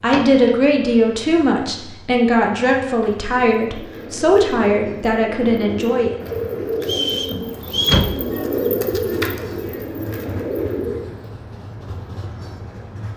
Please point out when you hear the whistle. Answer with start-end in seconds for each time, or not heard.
6.8-8.1.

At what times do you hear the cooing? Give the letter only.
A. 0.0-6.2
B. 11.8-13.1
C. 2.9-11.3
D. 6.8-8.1
C.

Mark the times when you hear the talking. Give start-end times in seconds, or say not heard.
0.0-6.2.